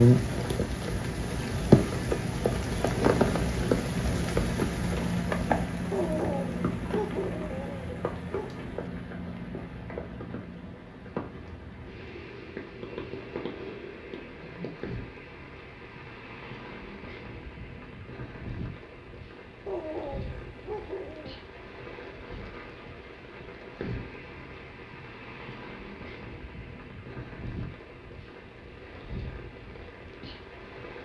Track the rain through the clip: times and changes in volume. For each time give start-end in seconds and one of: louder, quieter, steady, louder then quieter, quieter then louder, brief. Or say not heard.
0.0-31.0 quieter.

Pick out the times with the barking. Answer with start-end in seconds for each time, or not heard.
5.9-8.7, 19.6-21.4.